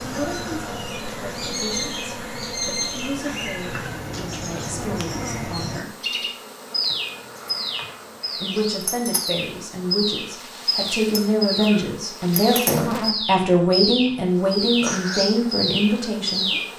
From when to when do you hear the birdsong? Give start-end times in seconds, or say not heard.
0.0-16.7.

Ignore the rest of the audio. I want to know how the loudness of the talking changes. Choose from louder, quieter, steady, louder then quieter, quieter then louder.
louder.